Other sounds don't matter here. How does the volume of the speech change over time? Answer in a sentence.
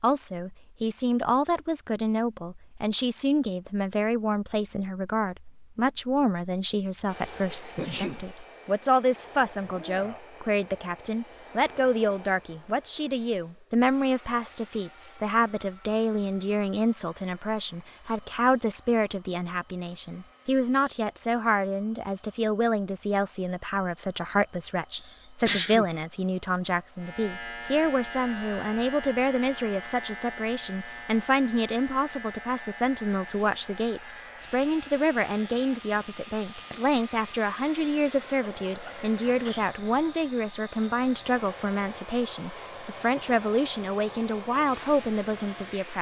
The volume of the speech stays about the same.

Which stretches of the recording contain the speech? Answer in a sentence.
You can hear the speech from 0.0 to 45.9 s.